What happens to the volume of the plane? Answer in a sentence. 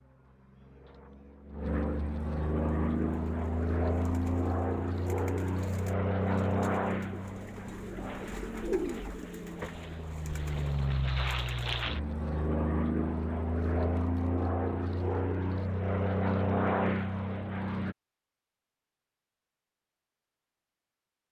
The loudness of the plane goes down, then up.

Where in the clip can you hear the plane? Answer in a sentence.
The plane can be heard from 0.0 to 17.9 s.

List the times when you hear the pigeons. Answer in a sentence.
You can hear the pigeons from 2.8 to 11.7 s.